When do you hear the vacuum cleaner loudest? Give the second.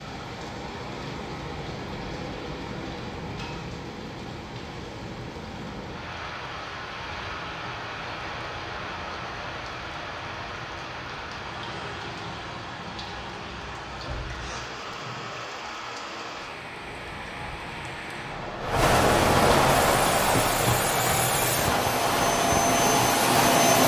23 s.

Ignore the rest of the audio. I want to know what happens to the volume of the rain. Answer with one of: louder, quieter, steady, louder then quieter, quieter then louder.
louder.